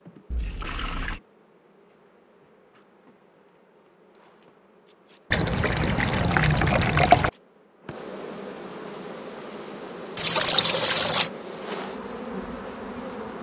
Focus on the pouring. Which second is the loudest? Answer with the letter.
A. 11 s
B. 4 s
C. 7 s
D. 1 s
C.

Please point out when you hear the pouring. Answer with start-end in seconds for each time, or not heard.
0.3-1.2, 5.3-7.3, 10.2-11.3.